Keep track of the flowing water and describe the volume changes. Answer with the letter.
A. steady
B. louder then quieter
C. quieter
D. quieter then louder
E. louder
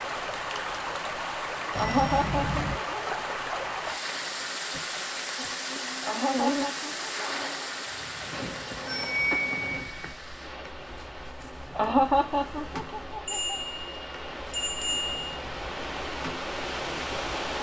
D.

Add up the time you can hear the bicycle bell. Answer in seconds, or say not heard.
5 s.